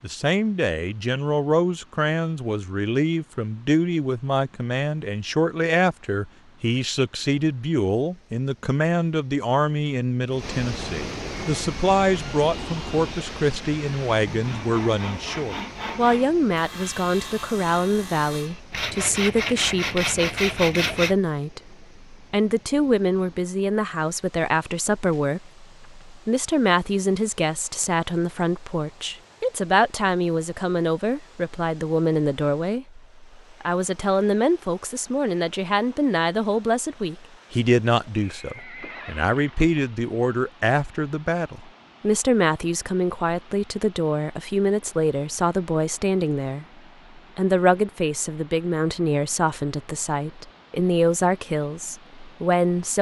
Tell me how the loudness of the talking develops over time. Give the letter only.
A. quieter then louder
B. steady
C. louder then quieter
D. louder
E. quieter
B.